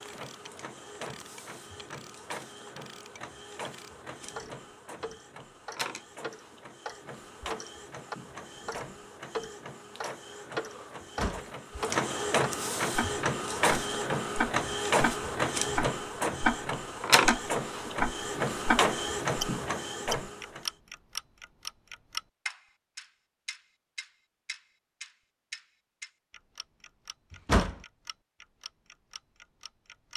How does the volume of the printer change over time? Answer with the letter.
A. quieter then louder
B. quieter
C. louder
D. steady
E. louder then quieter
C.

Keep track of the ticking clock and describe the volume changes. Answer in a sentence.
The loudness of the ticking clock goes up, then down.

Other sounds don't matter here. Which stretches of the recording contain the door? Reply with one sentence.
You can hear the door from 11.0 to 11.4 s and from 27.3 to 27.8 s.